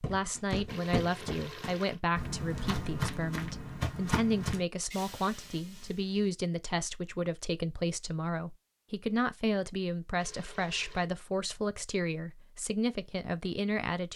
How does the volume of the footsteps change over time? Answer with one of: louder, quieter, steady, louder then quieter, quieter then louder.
quieter then louder.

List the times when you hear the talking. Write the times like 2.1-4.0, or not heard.
0.1-14.1.